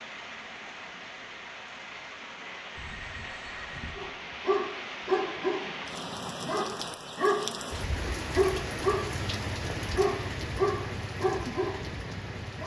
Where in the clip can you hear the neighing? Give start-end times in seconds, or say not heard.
2.8-4.2.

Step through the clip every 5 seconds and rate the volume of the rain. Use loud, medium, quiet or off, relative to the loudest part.
medium, loud, loud.